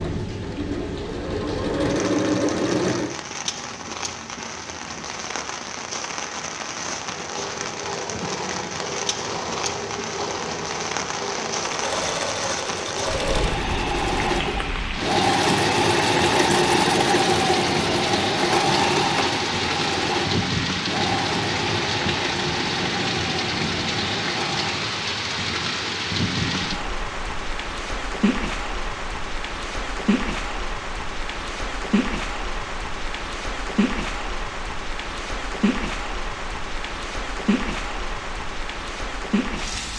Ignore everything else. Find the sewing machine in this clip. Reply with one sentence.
You can hear the sewing machine from 0.0 to 3.1 s and from 7.0 to 24.9 s.